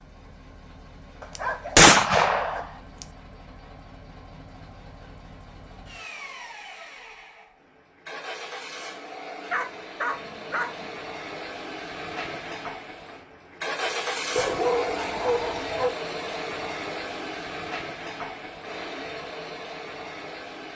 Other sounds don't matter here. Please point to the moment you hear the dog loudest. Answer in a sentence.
The volume of the dog peaks at 15 seconds.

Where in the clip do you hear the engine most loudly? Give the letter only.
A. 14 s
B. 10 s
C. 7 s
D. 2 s
A.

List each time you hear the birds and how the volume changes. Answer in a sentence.
You can't hear the birds here.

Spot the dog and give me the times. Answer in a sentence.
You can hear the dog from 1.2 to 2.6 s, from 9.5 to 10.9 s and from 14.3 to 15.9 s.